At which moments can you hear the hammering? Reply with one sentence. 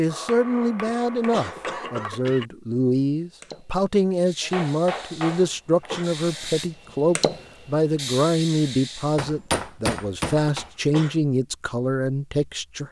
The hammering can be heard from 0.1 to 2.1 s, from 4.4 to 6.0 s and from 9.2 to 10.7 s.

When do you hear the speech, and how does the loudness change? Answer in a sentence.
The speech can be heard from 0.0 to 12.8 s, at a steady volume.